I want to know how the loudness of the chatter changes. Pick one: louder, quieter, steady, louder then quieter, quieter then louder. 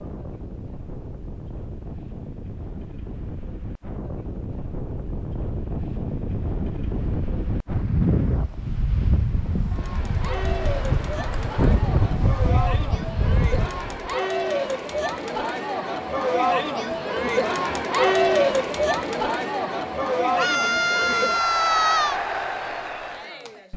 louder then quieter.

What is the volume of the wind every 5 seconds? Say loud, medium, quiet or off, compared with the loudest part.
medium, loud, loud, off, off.